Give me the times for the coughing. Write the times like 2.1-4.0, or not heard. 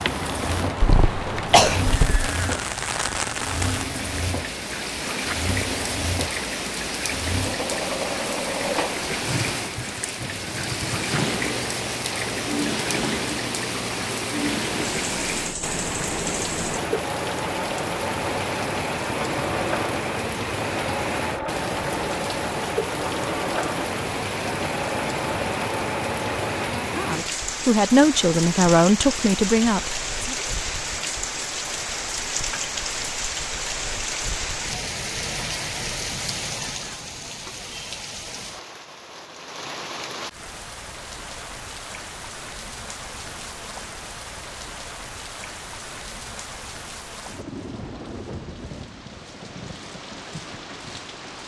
0.8-2.3.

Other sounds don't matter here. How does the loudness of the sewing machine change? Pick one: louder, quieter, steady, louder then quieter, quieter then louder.
steady.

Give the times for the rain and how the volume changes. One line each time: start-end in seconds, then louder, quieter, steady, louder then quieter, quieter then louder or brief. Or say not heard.
0.0-51.4 quieter.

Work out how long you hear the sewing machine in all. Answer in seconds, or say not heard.
27 s.